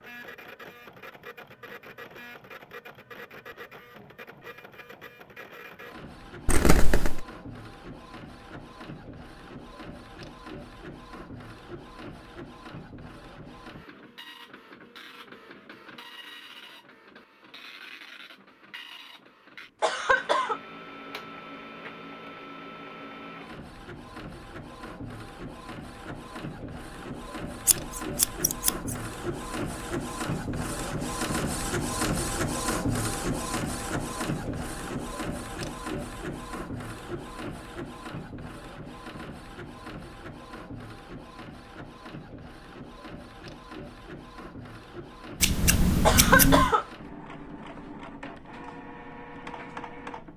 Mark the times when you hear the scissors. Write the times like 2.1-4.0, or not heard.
6.5-7.2, 27.6-28.9, 45.4-46.7.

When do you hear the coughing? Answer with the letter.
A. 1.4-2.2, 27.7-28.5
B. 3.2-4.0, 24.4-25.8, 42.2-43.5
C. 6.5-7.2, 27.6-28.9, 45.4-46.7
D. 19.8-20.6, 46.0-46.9
D.